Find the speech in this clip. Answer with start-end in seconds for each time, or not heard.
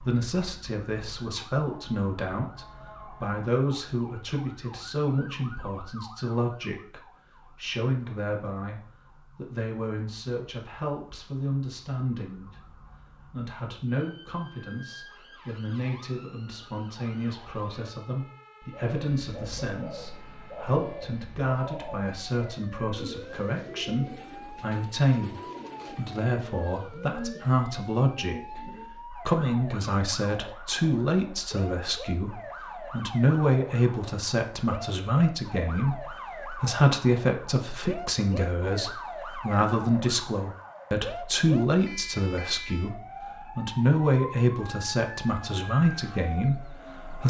0.0-47.2.